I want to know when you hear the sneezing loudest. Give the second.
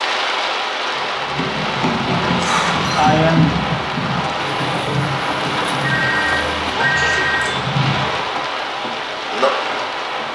3 s.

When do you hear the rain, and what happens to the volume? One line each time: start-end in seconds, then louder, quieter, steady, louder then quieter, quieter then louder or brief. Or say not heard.
0.0-10.3 steady.